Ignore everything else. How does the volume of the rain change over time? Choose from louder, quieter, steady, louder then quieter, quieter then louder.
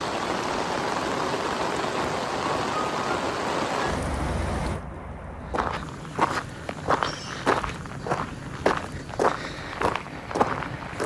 quieter.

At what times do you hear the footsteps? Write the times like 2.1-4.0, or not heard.
5.5-11.0.